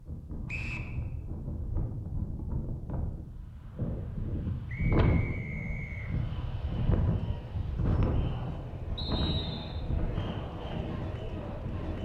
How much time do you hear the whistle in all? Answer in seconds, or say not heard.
3 s.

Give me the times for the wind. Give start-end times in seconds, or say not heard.
0.0-12.0.